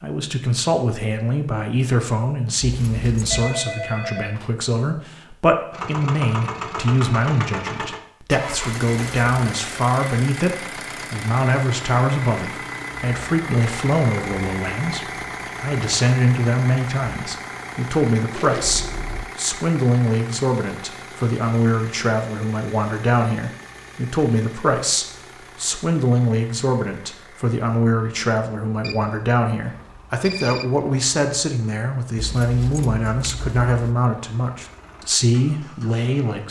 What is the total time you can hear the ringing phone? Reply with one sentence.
The ringing phone can be heard for 4 seconds in total.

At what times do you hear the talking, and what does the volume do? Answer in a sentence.
You can hear the talking from 0.0 to 36.4 s, at a steady volume.